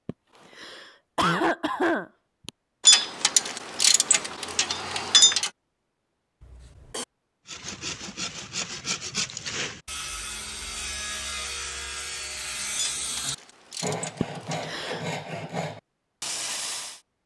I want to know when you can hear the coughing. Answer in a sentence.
The coughing can be heard from 0.1 to 2.5 s, from 6.4 to 7.0 s and from 14.2 to 15.0 s.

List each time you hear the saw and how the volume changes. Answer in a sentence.
The saw can be heard from 7.5 to 17.0 s, at a steady volume.